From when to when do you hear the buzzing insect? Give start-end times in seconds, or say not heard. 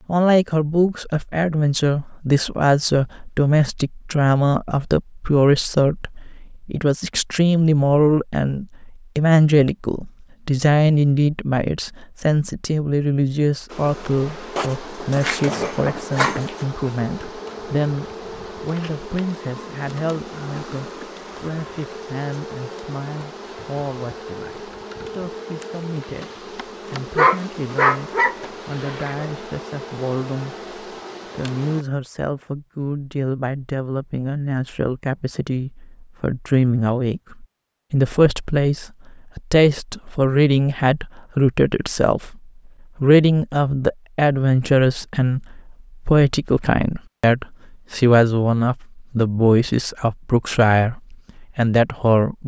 13.7-31.9.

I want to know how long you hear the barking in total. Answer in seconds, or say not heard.
4 s.